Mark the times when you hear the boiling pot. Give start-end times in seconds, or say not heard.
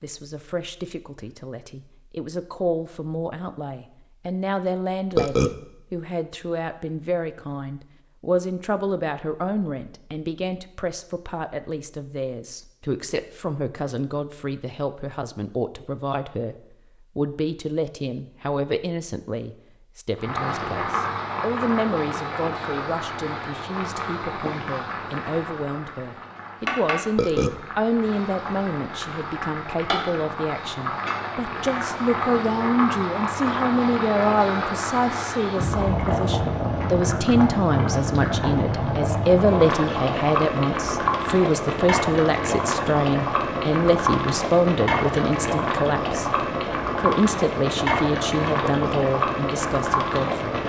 20.1-50.6.